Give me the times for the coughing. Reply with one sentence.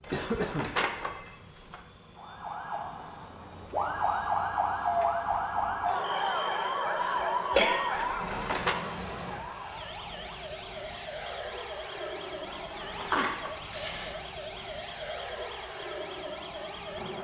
You can hear the coughing from 0.1 to 0.8 s, from 6.0 to 7.9 s and from 13.1 to 14.2 s.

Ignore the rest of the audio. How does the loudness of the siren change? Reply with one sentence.
The volume of the siren goes down.